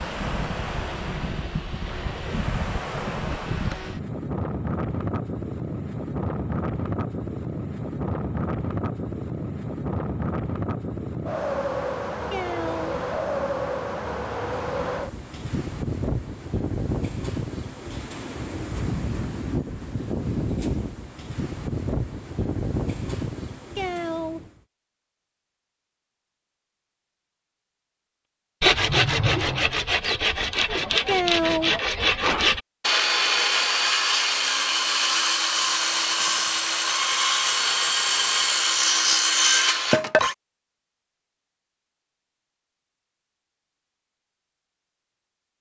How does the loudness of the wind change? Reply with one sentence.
The volume of the wind stays about the same.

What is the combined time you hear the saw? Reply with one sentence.
The saw can be heard for 12 seconds in total.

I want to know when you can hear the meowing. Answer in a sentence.
You can hear the meowing from 12.3 to 13.1 s, from 23.8 to 24.5 s and from 31.1 to 31.8 s.